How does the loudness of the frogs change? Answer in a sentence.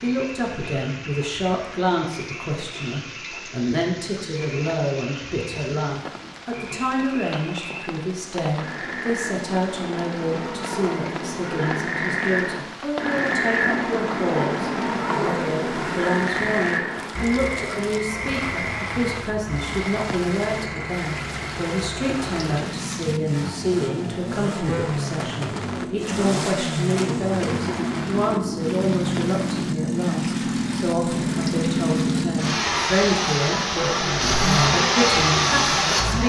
The loudness of the frogs goes up, then down.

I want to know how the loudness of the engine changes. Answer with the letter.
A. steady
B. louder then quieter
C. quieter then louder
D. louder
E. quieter
D.